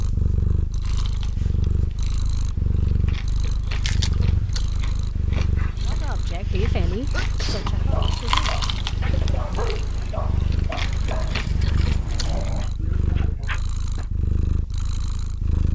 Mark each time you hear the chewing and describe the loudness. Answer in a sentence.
You can hear the chewing from 0.8 to 12.5 s, getting louder then quieter.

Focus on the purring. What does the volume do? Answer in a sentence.
The volume of the purring stays about the same.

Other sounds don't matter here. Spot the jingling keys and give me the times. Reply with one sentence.
You can hear the jingling keys from 3.8 to 4.7 s and from 10.8 to 12.4 s.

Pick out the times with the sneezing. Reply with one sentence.
You can hear the sneezing from 6.3 to 7.8 s.